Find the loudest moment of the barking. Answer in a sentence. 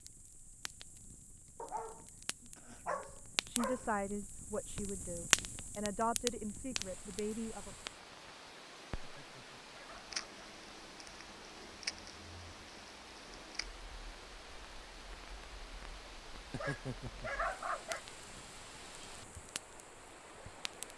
The volume of the barking peaks at 18 seconds.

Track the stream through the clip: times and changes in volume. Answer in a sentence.
The stream can be heard from 6.8 to 20.9 s, at a steady volume.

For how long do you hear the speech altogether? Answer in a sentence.
The speech can be heard for 5 seconds in total.